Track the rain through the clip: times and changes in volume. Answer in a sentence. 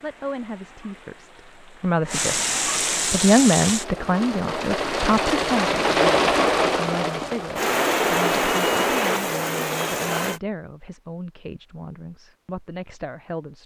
The rain can be heard from 0.0 to 10.4 s, getting louder.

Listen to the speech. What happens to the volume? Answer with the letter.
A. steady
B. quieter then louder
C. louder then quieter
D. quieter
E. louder
C.